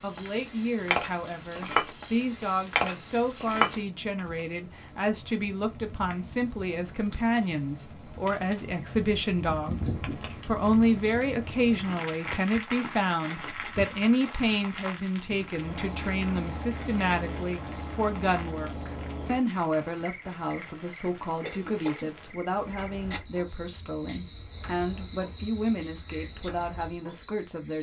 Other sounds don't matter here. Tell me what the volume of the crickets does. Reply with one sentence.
The loudness of the crickets goes down.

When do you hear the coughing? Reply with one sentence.
You can hear the coughing from 21.4 to 22.1 s.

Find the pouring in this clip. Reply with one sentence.
You can't hear the pouring here.